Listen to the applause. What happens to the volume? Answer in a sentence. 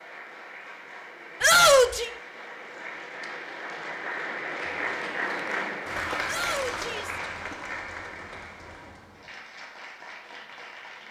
The loudness of the applause goes up, then down.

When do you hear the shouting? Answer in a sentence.
You can hear the shouting from 1.4 to 2.1 s and from 6.2 to 7.2 s.